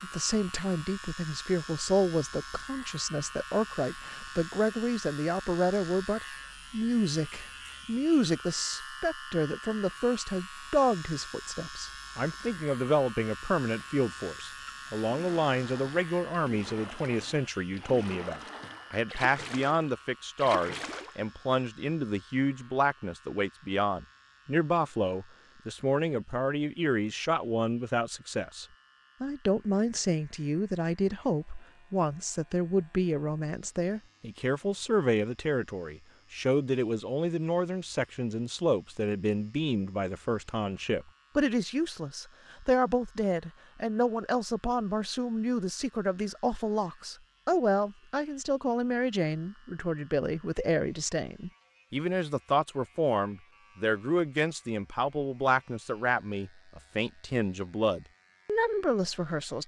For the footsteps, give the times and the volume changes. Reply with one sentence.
You can't hear the footsteps here.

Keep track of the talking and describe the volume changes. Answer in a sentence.
The loudness of the talking stays about the same.